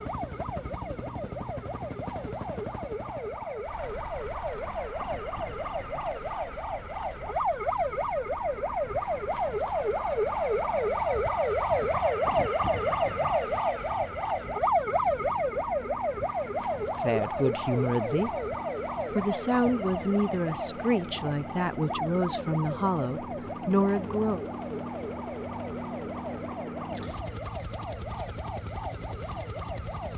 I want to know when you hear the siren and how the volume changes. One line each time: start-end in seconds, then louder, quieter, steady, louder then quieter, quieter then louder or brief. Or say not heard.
0.0-30.1 louder then quieter.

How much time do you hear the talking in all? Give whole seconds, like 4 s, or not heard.
7 s.